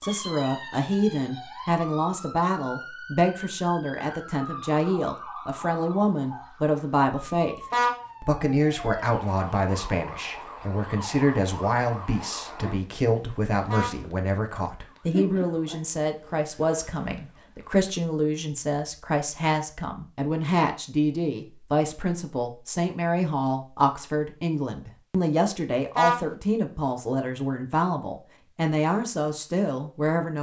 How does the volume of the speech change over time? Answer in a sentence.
The loudness of the speech stays about the same.